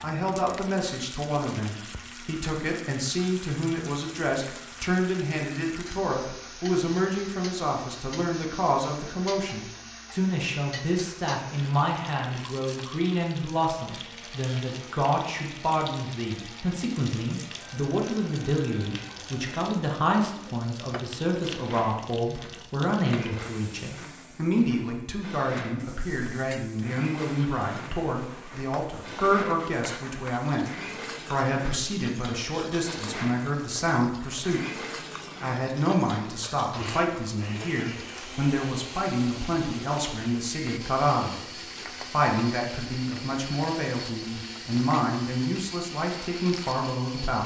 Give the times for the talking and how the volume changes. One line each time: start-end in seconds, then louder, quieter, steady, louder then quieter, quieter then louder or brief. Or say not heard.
0.0-47.4 steady.